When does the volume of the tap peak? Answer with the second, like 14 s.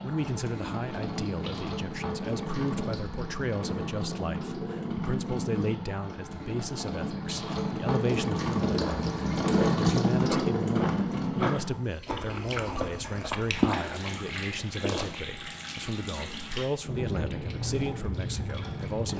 10 s.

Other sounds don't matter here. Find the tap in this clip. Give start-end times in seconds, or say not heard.
0.0-19.1.